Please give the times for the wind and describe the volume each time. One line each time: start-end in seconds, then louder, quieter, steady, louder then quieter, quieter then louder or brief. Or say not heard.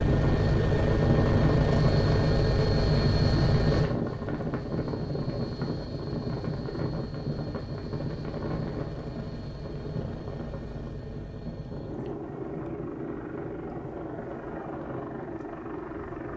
0.0-16.3 quieter.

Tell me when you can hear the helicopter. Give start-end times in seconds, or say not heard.
0.0-16.3.